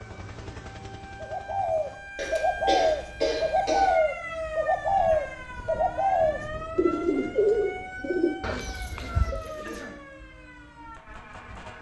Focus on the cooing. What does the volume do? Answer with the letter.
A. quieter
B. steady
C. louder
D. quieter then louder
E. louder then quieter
A.